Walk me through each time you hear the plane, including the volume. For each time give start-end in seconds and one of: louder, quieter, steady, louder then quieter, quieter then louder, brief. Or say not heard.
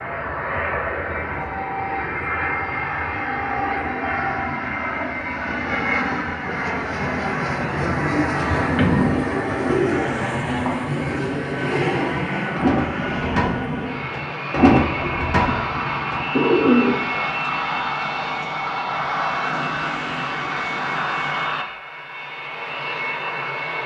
0.0-23.8 steady.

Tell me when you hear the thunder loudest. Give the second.
9 s.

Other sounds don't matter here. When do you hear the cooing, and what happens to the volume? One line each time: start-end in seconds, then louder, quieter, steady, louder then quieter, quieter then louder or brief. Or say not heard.
8.1-17.2 quieter then louder.